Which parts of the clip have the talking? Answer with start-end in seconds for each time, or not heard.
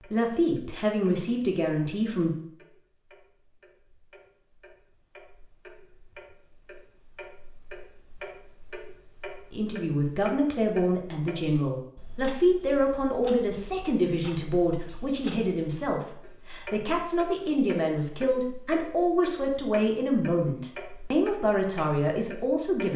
0.1-2.3, 9.5-22.9.